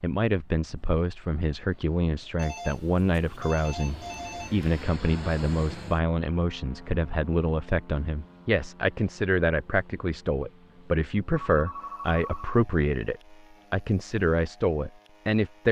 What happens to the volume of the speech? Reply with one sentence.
The volume of the speech stays about the same.